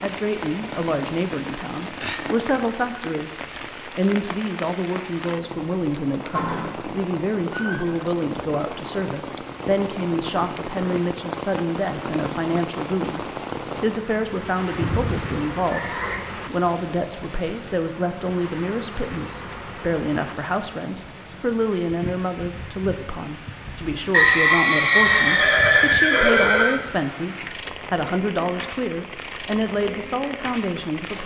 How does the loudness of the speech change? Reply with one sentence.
The loudness of the speech stays about the same.